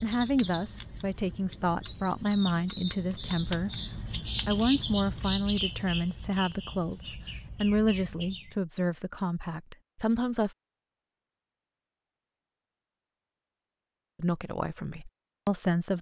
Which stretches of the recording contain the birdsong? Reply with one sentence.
You can hear the birdsong from 0.0 to 8.6 s.